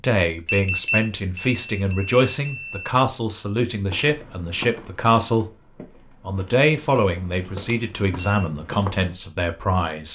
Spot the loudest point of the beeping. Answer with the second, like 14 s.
1 s.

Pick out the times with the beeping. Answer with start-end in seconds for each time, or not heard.
0.5-2.9, 7.5-8.5.